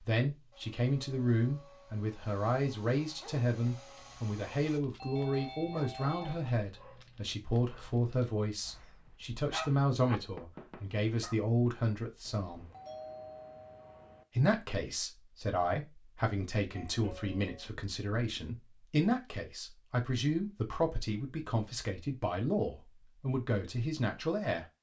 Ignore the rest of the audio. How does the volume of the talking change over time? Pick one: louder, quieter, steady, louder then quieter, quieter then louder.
steady.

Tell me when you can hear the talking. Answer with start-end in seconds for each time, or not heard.
0.0-12.7, 14.3-24.6.